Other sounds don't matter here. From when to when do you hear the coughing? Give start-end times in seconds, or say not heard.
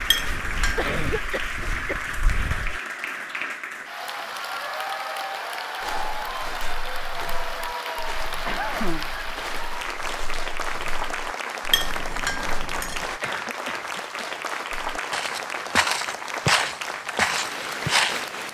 0.8-2.0, 8.4-9.1, 13.2-14.2.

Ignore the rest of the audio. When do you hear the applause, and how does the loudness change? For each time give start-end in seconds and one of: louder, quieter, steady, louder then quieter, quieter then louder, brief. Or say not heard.
0.0-18.4 steady.